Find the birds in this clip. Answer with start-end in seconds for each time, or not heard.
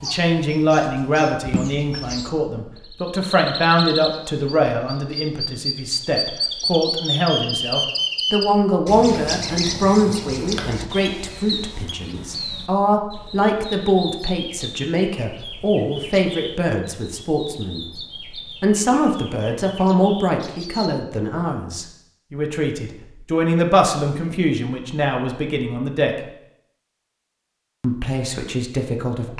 0.0-20.9.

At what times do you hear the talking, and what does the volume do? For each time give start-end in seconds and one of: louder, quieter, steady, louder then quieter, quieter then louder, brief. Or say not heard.
0.0-26.2 steady
27.8-29.3 brief.